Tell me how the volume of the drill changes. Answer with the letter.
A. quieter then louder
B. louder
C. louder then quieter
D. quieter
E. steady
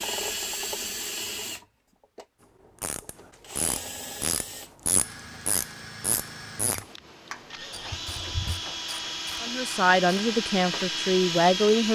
A.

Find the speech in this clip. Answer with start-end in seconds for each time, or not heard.
9.4-11.9.